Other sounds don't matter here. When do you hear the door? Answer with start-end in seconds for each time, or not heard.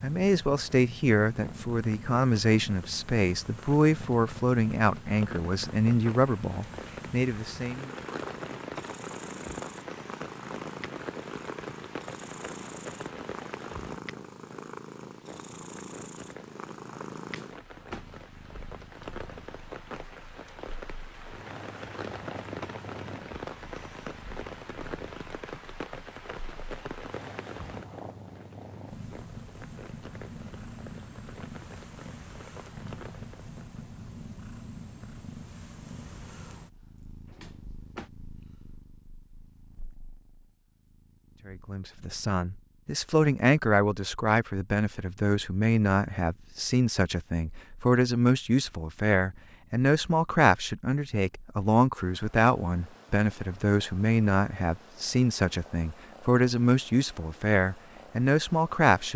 17.2-18.2, 37.2-38.1.